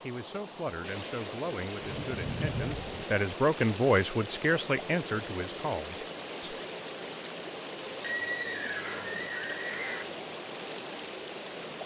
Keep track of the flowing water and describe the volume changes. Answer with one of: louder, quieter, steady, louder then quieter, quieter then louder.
steady.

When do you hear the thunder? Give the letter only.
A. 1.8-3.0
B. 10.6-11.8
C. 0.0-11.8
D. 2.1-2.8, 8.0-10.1
A.